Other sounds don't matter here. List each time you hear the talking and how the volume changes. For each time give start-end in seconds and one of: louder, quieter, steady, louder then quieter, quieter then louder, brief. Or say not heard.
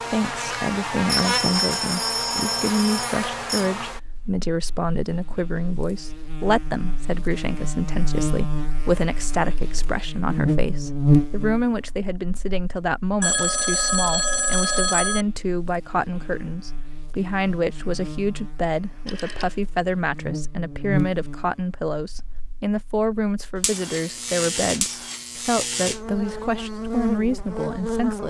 0.1-28.2 steady.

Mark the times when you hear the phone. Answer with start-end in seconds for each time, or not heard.
1.1-3.7, 13.2-15.2, 19.1-19.6.